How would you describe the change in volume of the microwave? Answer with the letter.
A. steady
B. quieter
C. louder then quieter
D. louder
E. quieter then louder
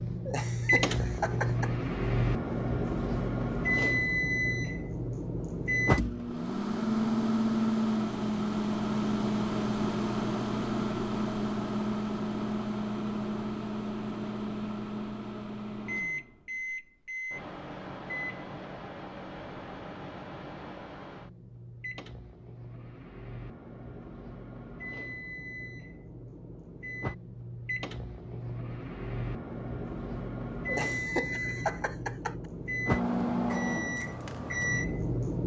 E.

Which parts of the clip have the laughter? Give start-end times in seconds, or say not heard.
0.2-1.7, 30.6-32.4.